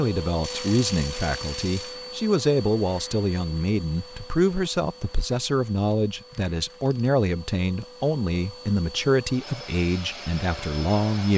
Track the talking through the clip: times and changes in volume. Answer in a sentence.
The talking can be heard from 0.0 to 11.3 s, at a steady volume.